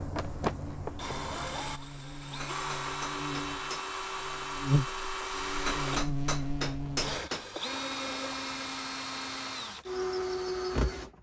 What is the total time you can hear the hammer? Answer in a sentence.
The hammer can be heard for 3 seconds in total.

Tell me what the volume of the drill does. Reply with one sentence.
The volume of the drill stays about the same.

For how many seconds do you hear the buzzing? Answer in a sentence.
You can hear the buzzing for 7 seconds altogether.